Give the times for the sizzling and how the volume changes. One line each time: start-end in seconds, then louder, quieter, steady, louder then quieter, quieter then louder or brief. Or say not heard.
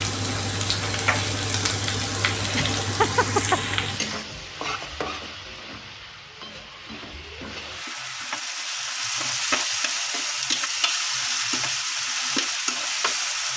0.0-13.5 quieter then louder.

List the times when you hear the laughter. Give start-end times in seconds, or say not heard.
2.5-3.6.